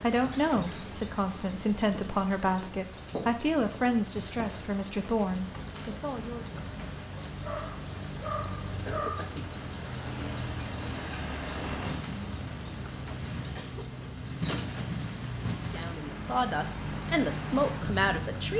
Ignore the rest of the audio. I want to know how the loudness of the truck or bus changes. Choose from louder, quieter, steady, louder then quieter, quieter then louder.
louder.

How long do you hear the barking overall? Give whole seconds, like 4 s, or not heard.
2 s.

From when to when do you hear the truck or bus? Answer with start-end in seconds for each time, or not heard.
0.1-18.5.